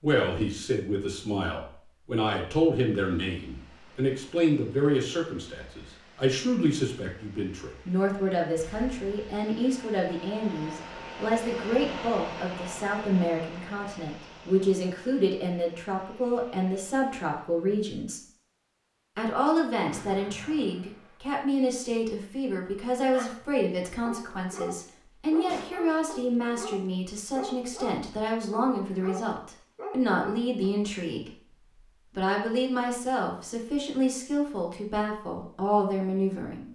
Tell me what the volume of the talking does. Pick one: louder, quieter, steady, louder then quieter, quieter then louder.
steady.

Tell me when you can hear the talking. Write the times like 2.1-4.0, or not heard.
0.0-18.2, 19.1-31.4, 32.1-36.7.